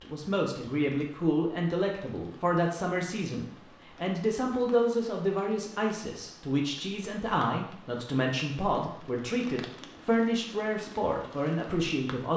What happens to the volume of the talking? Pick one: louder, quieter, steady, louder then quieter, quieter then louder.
steady.